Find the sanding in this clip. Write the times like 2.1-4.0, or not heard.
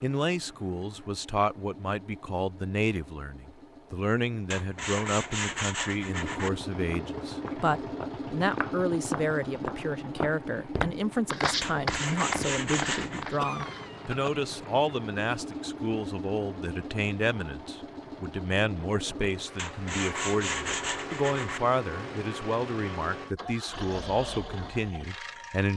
4.5-6.5, 11.6-13.2, 19.6-21.6.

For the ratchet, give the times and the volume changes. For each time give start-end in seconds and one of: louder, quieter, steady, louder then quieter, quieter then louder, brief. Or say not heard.
not heard.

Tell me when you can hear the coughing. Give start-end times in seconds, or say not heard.
13.3-14.4.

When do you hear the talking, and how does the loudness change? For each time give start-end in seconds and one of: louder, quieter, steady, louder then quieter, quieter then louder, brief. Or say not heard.
0.0-25.7 steady.